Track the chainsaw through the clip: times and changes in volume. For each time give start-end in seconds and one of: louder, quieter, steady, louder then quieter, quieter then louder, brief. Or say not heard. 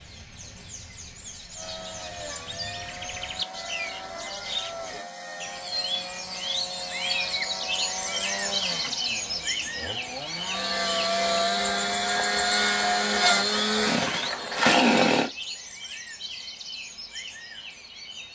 1.6-15.3 louder.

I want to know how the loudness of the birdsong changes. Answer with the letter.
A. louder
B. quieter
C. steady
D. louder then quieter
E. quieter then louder
D.